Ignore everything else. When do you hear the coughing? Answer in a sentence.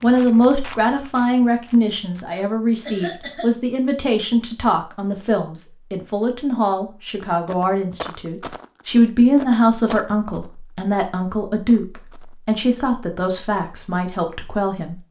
The coughing can be heard from 2.3 to 3.5 s.